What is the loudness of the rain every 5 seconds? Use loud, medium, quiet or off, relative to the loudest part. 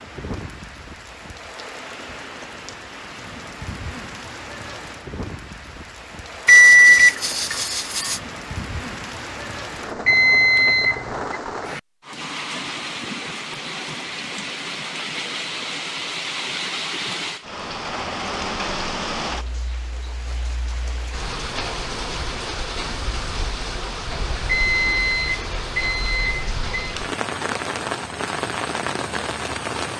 medium, medium, loud, loud, loud, loud.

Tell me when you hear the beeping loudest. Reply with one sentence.
The volume of the beeping peaks at 7 seconds.